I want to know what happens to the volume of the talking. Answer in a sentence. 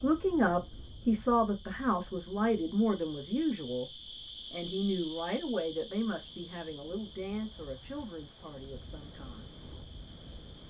The loudness of the talking goes down.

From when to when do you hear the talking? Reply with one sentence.
You can hear the talking from 0.0 to 9.6 s.